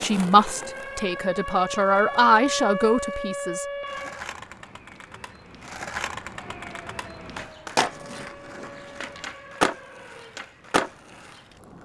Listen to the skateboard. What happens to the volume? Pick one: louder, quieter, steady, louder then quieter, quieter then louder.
louder.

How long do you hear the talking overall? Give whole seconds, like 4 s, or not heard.
4 s.